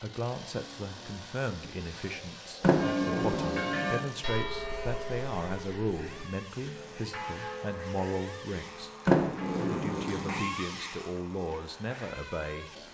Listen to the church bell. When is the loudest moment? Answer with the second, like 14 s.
3 s.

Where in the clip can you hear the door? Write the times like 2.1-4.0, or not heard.
2.6-4.0, 9.1-10.4.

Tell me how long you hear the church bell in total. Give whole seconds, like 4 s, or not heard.
7 s.